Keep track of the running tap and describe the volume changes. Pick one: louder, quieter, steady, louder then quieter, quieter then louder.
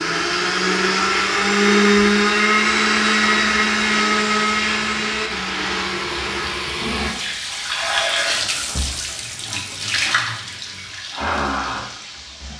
louder.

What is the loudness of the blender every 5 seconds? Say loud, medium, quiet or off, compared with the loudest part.
loud, medium, off.